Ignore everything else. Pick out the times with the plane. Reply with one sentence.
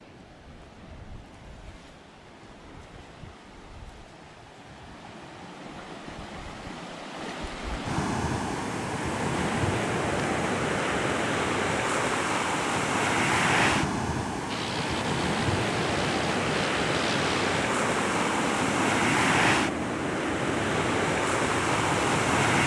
The plane can be heard from 14.4 to 22.4 s.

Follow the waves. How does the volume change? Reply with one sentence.
The loudness of the waves goes up.